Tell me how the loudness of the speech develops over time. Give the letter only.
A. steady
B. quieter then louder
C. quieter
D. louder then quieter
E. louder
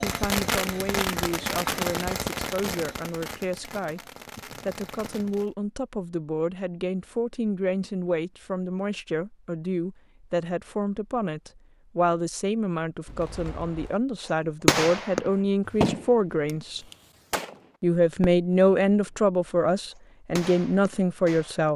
E.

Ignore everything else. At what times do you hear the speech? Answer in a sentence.
You can hear the speech from 0.0 to 4.0 s, from 4.7 to 16.9 s and from 17.8 to 21.7 s.